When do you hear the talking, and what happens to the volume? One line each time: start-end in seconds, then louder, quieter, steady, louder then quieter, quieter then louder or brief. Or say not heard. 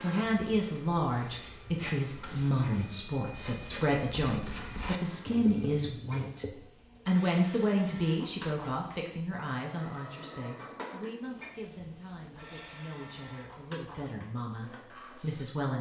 0.0-15.7 quieter.